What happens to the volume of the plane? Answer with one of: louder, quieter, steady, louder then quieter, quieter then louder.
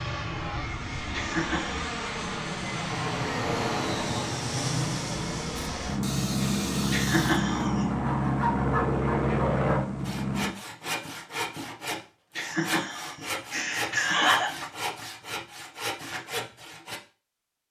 louder.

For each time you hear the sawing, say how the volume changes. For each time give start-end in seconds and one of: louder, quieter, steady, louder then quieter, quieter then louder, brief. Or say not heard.
5.8-17.0 steady.